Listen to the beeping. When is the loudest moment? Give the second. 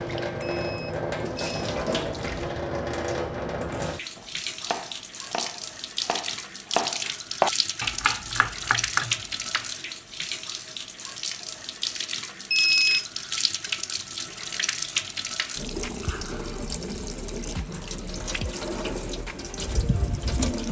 13 s.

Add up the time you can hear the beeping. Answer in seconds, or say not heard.
2 s.